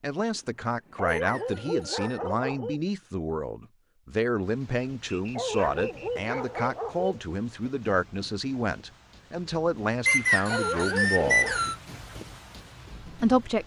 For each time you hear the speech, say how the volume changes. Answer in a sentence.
You can hear the speech from 0.0 to 11.6 s, at a steady volume; and briefly from 13.0 to 13.6 s.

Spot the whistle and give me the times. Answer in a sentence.
You can hear the whistle from 1.1 to 2.2 s, from 5.0 to 6.7 s and from 10.1 to 11.8 s.